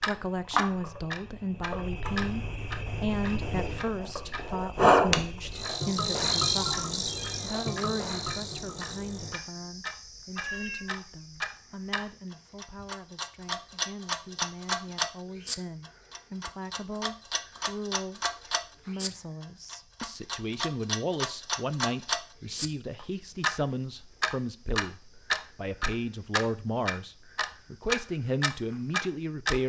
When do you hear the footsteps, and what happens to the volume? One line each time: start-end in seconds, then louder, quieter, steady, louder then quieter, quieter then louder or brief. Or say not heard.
not heard.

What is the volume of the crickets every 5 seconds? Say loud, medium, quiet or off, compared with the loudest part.
loud, loud, quiet, quiet, quiet, quiet.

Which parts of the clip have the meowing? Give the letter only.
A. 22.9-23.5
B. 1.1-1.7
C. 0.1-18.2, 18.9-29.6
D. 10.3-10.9
D.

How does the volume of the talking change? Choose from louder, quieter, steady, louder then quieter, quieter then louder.
quieter then louder.